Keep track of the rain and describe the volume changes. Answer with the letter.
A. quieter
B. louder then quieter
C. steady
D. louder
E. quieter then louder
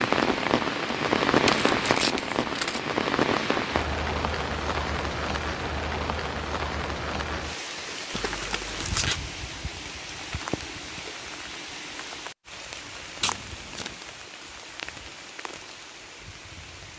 A.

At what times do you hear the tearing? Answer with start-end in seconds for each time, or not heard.
1.4-2.8, 8.1-9.2, 13.2-14.1.